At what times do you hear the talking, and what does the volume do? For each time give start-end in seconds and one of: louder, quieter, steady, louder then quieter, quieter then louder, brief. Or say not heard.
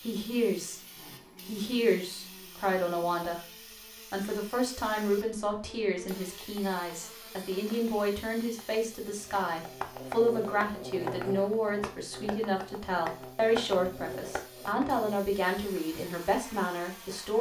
0.0-0.8 brief
1.4-17.3 steady.